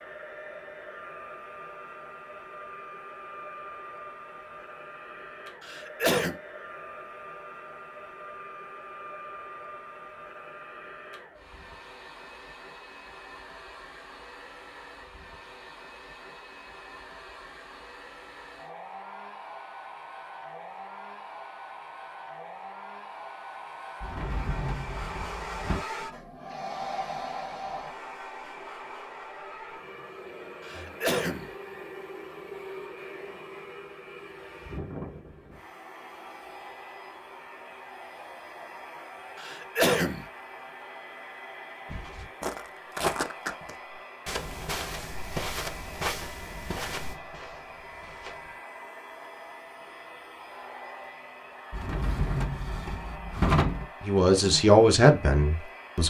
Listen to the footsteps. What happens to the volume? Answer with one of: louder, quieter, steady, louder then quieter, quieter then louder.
quieter.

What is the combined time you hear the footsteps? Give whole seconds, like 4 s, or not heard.
7 s.